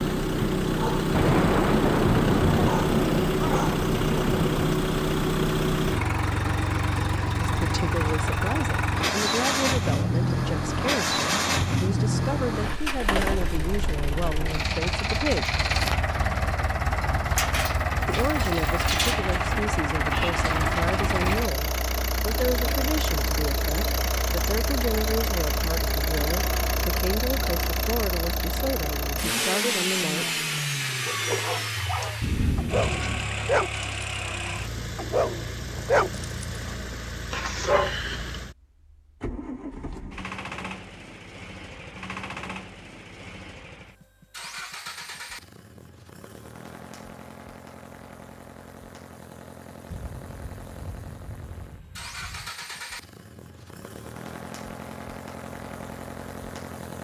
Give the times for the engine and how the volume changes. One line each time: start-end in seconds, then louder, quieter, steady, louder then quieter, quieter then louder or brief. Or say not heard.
0.0-56.9 quieter.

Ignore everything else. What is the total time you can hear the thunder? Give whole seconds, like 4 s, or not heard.
7 s.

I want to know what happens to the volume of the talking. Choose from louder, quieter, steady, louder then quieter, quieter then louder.
steady.